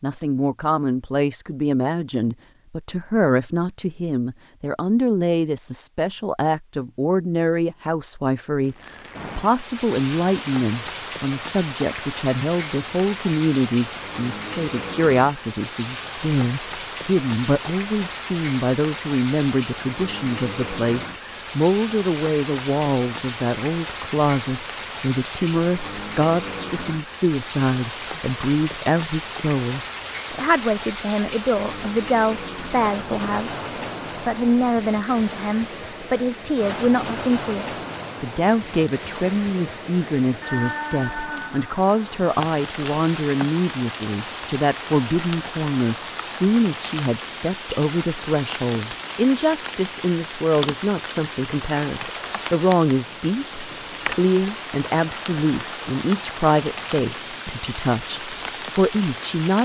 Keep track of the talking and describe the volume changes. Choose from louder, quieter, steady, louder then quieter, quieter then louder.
steady.